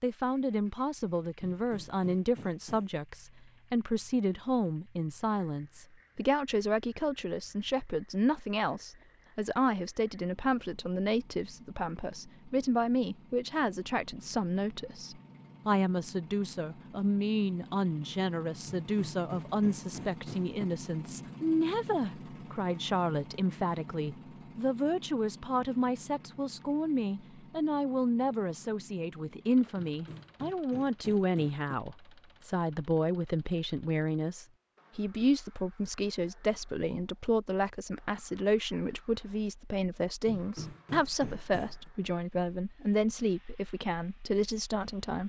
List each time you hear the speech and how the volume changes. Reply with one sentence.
The speech can be heard from 0.0 to 45.2 s, at a steady volume.